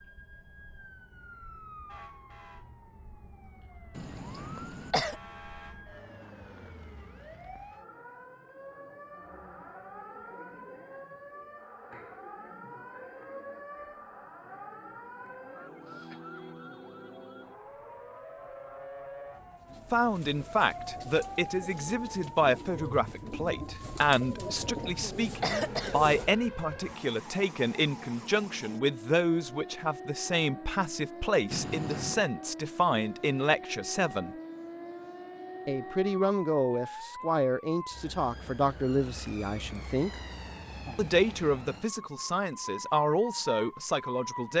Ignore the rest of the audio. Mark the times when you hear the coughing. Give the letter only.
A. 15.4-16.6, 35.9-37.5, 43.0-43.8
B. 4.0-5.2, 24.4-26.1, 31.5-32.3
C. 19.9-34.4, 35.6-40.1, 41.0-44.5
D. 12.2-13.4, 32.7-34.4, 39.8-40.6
B.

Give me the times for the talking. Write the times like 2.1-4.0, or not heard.
19.9-34.4, 35.6-40.1, 41.0-44.5.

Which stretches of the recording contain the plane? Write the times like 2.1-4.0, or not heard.
not heard.